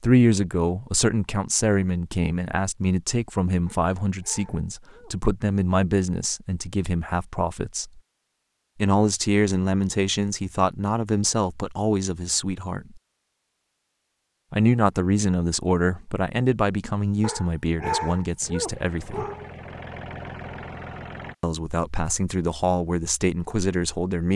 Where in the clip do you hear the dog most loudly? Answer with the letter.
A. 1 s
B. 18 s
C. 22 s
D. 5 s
B.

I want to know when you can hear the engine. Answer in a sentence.
You can hear the engine from 18.4 to 21.4 s.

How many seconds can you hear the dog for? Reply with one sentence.
The dog can be heard for 4 seconds in total.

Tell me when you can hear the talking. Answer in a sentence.
The talking can be heard from 0.0 to 8.0 s, from 8.8 to 13.0 s, from 14.5 to 19.2 s and from 21.4 to 24.3 s.